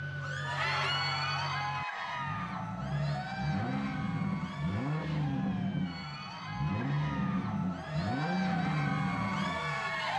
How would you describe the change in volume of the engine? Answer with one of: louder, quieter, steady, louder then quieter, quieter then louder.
louder.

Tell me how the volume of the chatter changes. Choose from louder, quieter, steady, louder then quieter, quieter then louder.
quieter then louder.